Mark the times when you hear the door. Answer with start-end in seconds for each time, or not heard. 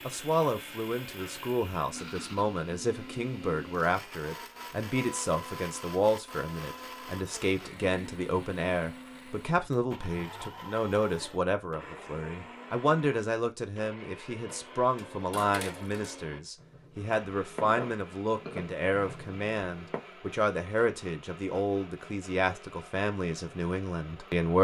not heard.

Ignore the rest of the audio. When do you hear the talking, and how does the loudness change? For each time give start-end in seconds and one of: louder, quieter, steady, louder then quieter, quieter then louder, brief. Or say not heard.
0.1-24.6 steady.